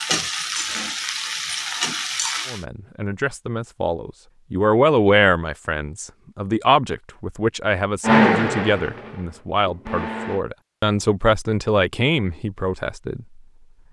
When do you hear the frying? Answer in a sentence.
You can hear the frying from 0.0 to 2.6 s.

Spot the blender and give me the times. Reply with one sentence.
The blender can be heard from 8.0 to 10.4 s.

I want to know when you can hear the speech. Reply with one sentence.
The speech can be heard from 2.5 to 13.4 s.